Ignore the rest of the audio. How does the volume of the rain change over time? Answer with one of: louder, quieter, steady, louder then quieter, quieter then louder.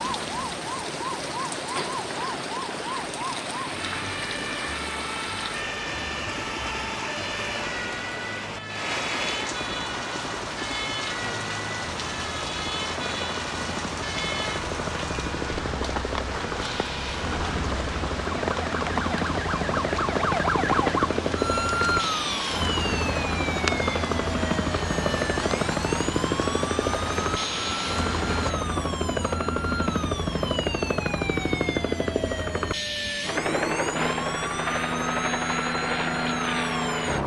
steady.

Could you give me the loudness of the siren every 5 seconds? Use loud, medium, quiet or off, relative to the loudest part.
medium, medium, medium, medium, loud, medium, medium, medium.